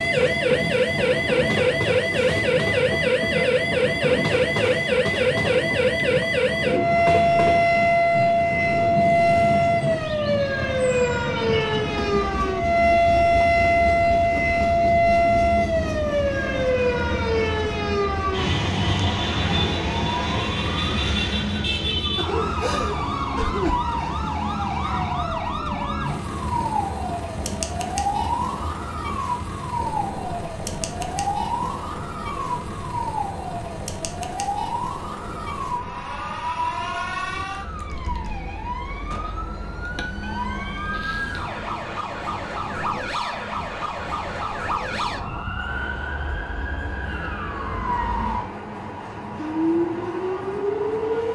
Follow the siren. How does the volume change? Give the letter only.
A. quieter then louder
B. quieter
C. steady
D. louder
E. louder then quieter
B.